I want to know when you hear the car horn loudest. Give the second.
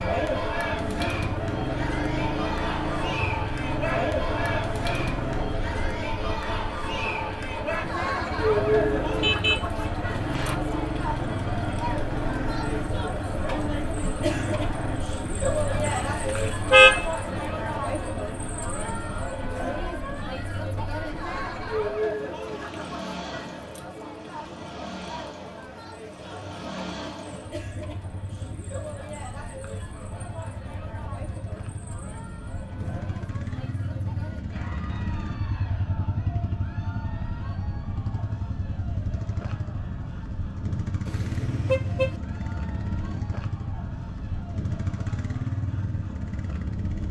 17 s.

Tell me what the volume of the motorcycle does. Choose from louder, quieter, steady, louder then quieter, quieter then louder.
quieter then louder.